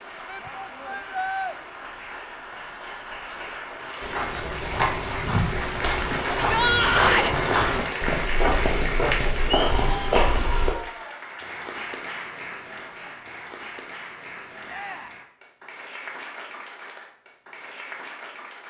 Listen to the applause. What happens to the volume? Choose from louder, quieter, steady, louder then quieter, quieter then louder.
louder then quieter.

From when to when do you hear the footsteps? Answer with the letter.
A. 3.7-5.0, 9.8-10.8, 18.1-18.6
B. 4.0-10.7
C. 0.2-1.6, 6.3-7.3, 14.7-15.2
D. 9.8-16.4
B.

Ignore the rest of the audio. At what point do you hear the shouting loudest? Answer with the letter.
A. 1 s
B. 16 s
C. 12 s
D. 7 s
D.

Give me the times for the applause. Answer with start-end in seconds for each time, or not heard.
0.0-18.6.